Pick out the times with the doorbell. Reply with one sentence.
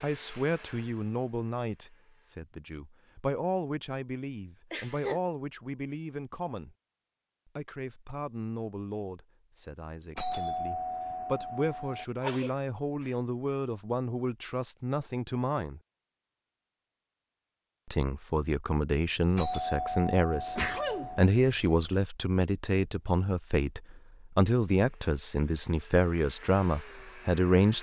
You can hear the doorbell from 10.2 to 12.1 s and from 19.4 to 21.2 s.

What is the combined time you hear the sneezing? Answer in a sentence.
You can hear the sneezing for 3 seconds altogether.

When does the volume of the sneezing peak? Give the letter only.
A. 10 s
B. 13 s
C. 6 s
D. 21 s
D.